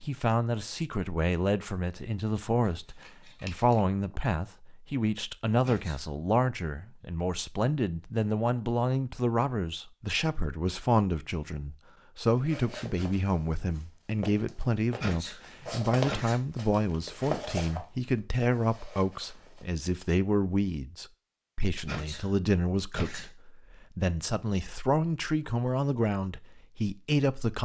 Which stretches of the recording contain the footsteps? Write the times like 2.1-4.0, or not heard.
12.3-19.8.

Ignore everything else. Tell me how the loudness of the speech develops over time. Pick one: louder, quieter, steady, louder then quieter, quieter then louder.
steady.